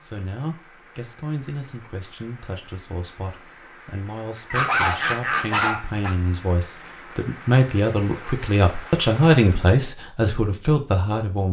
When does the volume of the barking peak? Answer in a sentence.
The volume of the barking peaks at 5 seconds.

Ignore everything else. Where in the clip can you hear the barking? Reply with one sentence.
You can hear the barking from 4.5 to 6.2 s.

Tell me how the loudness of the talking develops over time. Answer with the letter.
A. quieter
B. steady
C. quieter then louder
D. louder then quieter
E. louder
E.